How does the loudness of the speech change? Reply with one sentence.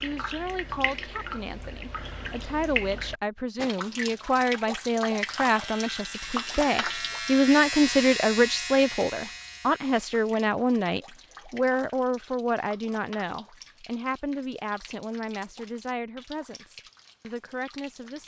The loudness of the speech goes up, then down.